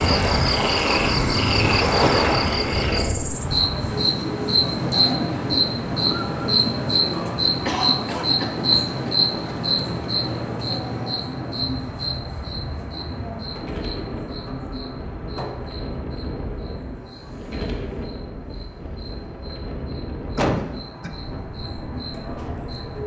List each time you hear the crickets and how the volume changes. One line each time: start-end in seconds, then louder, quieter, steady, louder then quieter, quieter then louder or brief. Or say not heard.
0.0-23.0 quieter.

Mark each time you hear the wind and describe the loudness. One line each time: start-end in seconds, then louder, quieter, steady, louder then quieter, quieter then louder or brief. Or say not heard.
0.0-23.0 quieter.